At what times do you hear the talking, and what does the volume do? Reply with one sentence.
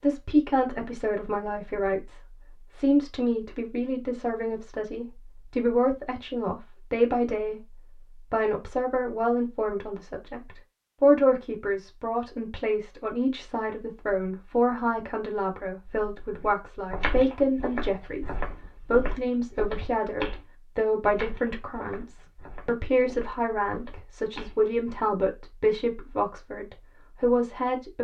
You can hear the talking from 0.0 to 27.9 s, at a steady volume.